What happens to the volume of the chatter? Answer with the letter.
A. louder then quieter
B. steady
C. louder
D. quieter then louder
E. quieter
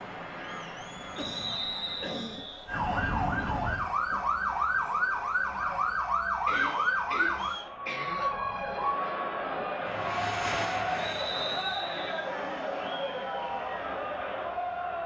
C.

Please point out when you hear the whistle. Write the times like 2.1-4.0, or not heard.
1.1-2.6, 6.5-7.8, 10.9-12.3.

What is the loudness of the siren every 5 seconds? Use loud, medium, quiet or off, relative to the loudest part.
loud, loud, off.